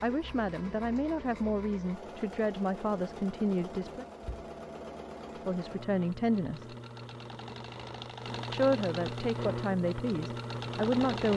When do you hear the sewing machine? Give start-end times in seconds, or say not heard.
0.0-11.3.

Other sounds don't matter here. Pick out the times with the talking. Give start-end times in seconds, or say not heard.
0.0-4.0, 5.5-6.8, 8.5-11.3.